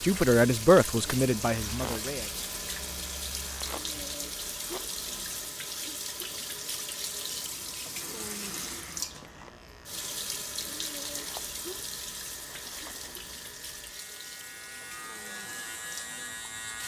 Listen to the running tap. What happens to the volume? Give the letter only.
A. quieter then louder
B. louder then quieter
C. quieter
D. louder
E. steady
C.